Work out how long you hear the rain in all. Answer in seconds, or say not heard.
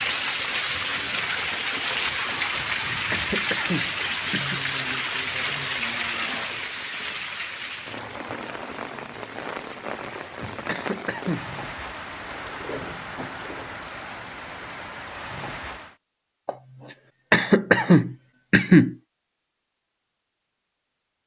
16 s.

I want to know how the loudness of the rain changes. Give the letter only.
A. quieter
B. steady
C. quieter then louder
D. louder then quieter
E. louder
A.